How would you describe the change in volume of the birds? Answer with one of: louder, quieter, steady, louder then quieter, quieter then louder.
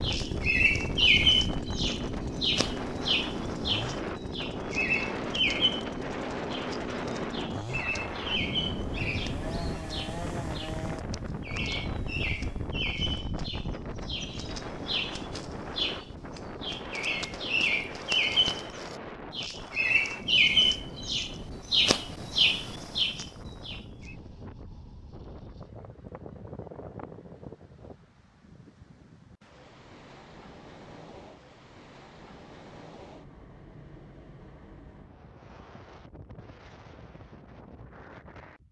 quieter then louder.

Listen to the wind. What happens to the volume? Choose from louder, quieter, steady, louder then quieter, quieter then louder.
quieter.